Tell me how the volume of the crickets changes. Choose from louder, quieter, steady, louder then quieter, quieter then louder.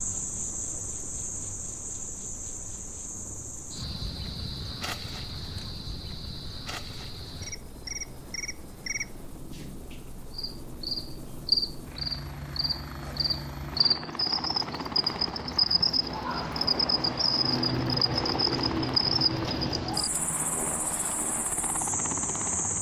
louder.